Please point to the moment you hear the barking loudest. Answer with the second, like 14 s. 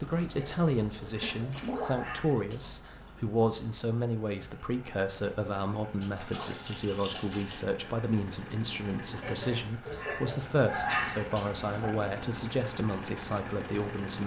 11 s.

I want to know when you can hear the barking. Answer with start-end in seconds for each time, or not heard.
0.3-2.7, 9.2-11.9.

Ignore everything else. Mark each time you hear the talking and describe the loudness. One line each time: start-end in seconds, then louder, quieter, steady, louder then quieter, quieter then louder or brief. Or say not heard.
0.0-14.2 steady.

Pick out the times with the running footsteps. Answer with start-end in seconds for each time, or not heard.
not heard.